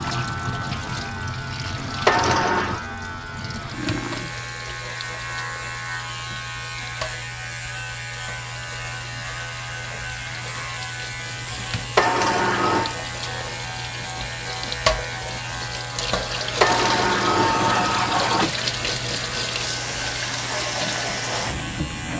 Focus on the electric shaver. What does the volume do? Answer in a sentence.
The loudness of the electric shaver stays about the same.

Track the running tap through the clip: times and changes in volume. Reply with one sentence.
The running tap can be heard from 0.0 to 22.1 s, getting quieter then louder.